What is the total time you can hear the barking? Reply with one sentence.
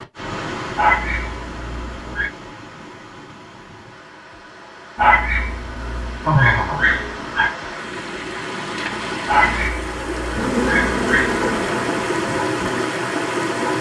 The barking can be heard for 6 seconds in total.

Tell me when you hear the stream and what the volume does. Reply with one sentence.
You can hear the stream from 0.0 to 13.7 s, getting quieter then louder.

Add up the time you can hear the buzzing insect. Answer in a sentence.
The buzzing insect can be heard for 3 seconds in total.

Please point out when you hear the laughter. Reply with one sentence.
The laughter can be heard from 6.2 to 6.9 s.